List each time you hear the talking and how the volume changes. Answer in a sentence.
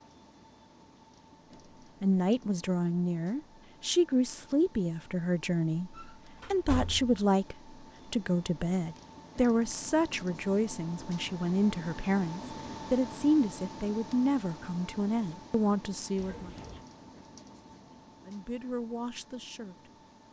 The talking can be heard from 2.0 to 16.5 s, at a steady volume; and briefly from 18.2 to 19.9 s.